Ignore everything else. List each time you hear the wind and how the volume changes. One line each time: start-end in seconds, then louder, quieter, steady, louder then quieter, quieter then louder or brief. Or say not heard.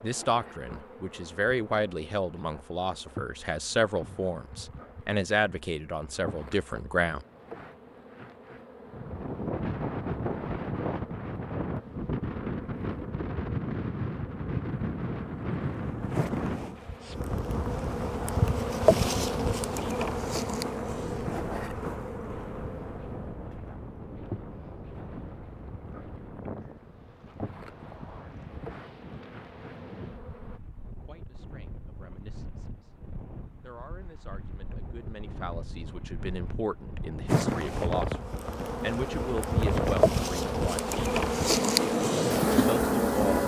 8.8-43.4 quieter then louder.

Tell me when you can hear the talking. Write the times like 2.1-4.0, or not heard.
0.0-7.2, 31.0-32.9, 33.6-40.9, 42.6-43.4.